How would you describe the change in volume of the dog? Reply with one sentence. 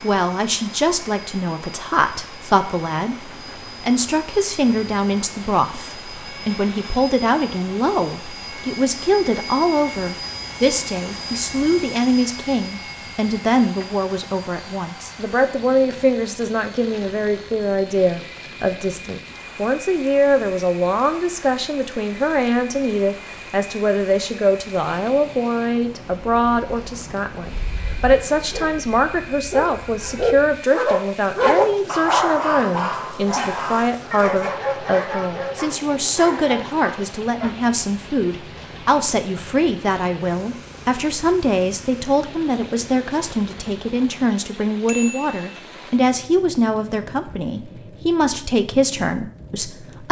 The loudness of the dog goes up, then down.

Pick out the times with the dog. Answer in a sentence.
The dog can be heard from 27.6 to 37.5 s.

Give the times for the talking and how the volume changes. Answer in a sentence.
The talking can be heard from 0.0 to 50.0 s, at a steady volume.